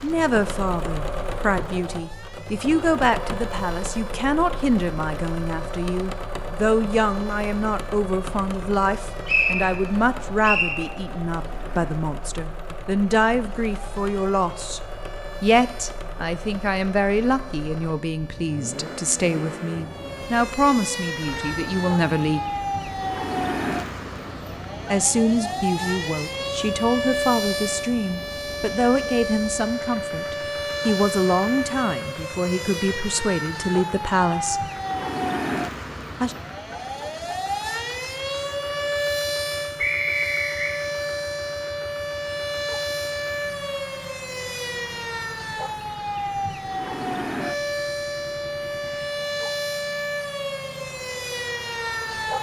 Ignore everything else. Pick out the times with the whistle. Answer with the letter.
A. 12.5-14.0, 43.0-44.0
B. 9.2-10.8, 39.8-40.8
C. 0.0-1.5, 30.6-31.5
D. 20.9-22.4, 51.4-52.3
B.